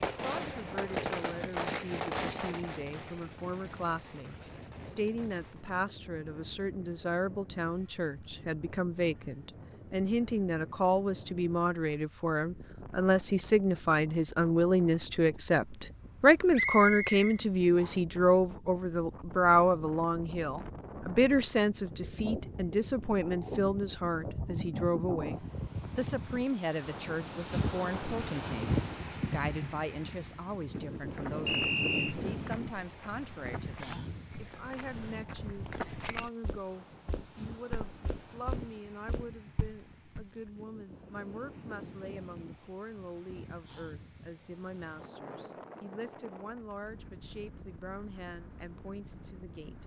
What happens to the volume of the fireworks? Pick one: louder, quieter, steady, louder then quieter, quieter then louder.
quieter.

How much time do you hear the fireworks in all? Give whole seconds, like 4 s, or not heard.
6 s.